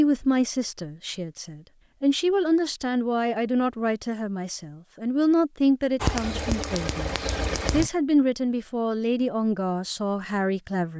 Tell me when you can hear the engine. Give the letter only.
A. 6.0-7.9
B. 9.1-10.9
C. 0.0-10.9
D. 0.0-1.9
A.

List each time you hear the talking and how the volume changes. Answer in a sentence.
You can hear the talking from 0.0 to 10.9 s, at a steady volume.